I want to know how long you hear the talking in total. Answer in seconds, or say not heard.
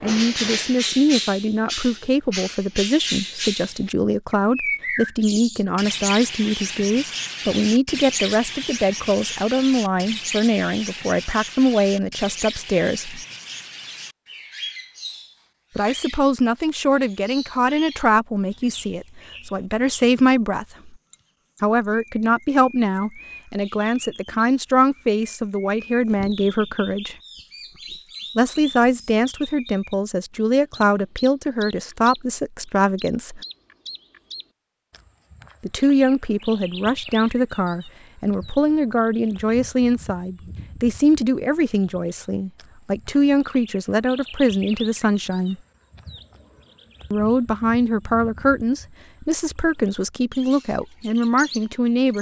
44 s.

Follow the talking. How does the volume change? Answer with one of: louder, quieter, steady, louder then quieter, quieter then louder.
steady.